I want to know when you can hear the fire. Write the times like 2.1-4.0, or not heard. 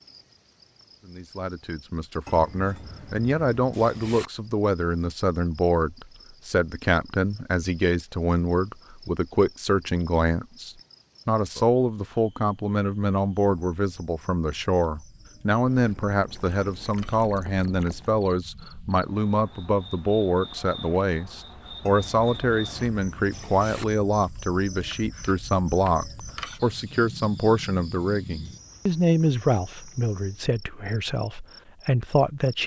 not heard.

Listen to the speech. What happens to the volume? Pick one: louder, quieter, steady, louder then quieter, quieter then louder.
steady.